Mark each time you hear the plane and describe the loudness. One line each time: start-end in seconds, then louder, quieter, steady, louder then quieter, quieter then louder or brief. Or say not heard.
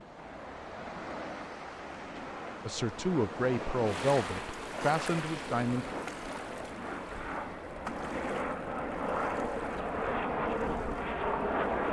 0.0-11.8 louder.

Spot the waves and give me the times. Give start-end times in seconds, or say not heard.
0.0-11.8.